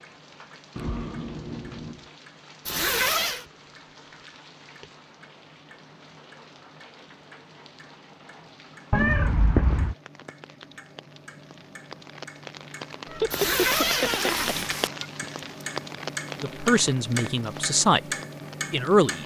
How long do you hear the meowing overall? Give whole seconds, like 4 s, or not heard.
4 s.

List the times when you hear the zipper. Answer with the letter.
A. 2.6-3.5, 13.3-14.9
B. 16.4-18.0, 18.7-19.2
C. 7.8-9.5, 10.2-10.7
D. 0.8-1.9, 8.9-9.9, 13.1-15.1
A.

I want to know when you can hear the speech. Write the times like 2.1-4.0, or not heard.
16.4-18.0, 18.7-19.2.